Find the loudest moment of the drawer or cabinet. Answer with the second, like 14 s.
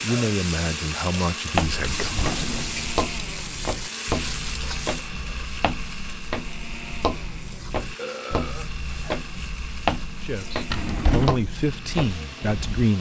11 s.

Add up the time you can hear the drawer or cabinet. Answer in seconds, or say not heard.
2 s.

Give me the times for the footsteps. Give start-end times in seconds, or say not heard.
1.5-12.8.